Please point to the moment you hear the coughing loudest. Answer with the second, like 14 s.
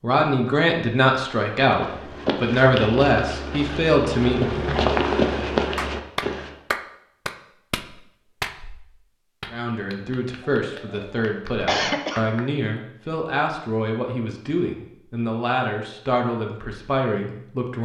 12 s.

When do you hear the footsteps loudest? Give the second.
5 s.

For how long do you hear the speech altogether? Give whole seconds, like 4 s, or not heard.
13 s.